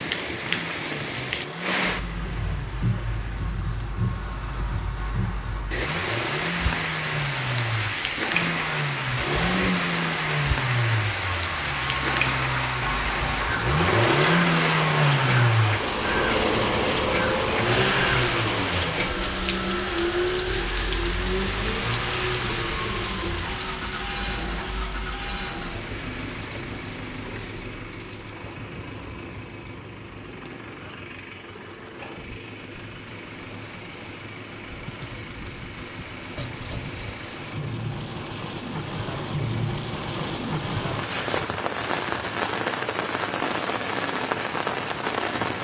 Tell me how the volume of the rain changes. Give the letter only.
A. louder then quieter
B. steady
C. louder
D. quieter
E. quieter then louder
E.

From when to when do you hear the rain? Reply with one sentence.
You can hear the rain from 0.0 to 45.5 s.